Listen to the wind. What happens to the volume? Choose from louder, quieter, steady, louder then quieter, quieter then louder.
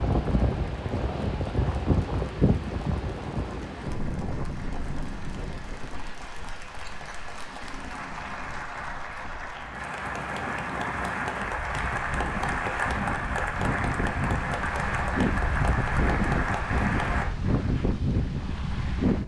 quieter then louder.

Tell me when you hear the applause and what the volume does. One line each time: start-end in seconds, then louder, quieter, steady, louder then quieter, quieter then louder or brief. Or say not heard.
0.0-17.2 louder.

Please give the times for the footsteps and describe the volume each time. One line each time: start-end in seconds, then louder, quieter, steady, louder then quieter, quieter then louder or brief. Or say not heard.
not heard.